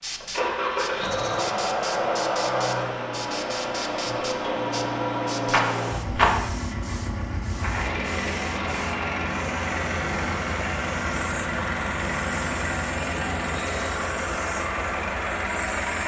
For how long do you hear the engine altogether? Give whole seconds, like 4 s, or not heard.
16 s.